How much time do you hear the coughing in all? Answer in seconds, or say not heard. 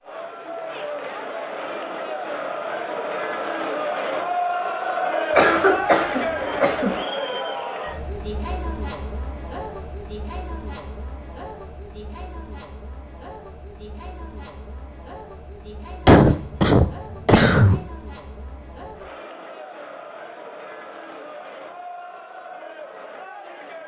3 s.